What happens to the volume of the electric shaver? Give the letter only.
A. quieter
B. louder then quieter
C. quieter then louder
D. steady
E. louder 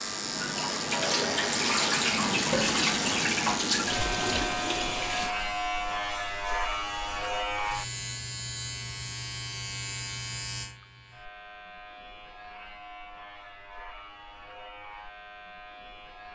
A.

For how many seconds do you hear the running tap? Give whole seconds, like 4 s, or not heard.
5 s.